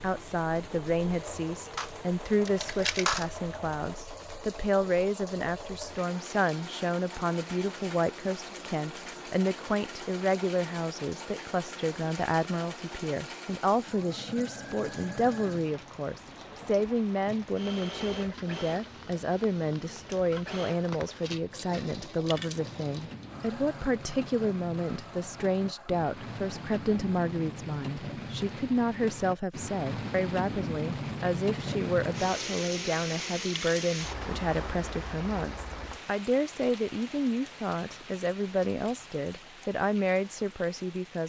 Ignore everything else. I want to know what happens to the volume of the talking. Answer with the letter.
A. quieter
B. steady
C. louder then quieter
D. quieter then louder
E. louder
B.